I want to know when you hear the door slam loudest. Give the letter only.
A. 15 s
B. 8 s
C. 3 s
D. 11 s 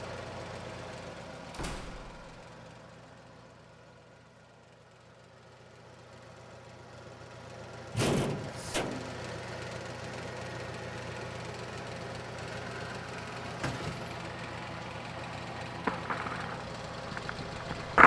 B.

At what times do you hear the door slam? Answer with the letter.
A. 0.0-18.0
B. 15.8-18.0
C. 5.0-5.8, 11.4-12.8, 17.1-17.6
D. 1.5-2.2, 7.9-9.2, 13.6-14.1
D.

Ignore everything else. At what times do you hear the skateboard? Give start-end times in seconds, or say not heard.
15.8-18.0.